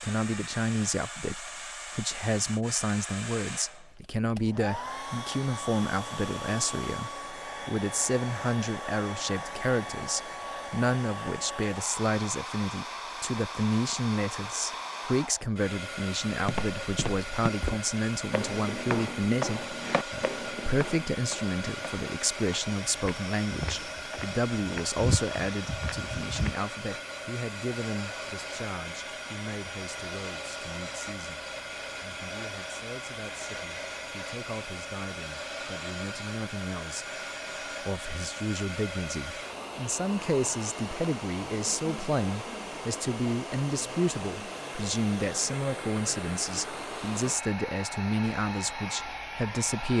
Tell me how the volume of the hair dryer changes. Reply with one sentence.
The loudness of the hair dryer stays about the same.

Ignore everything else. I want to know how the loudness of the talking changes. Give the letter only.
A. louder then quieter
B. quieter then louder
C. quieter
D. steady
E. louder
B.